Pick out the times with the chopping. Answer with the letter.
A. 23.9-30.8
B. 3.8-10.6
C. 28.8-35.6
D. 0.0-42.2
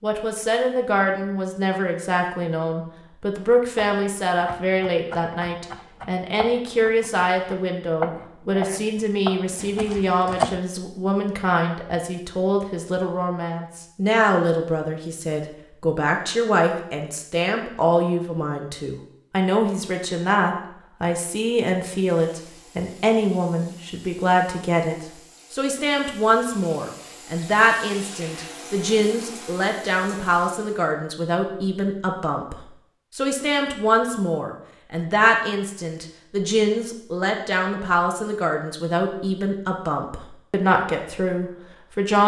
B.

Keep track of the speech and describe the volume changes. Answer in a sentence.
The volume of the speech stays about the same.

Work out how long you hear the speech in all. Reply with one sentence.
You can hear the speech for 42 seconds altogether.